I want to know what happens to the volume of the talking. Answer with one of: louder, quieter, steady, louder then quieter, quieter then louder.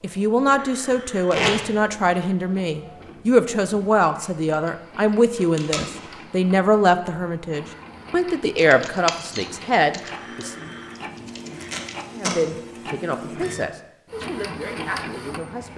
quieter.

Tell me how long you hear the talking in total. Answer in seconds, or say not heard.
14 s.